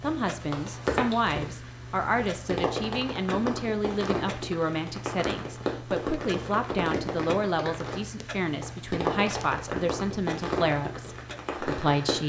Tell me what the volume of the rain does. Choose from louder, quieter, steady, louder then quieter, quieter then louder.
steady.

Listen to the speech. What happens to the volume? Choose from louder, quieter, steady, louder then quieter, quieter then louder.
steady.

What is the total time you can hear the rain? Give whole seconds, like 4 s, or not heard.
12 s.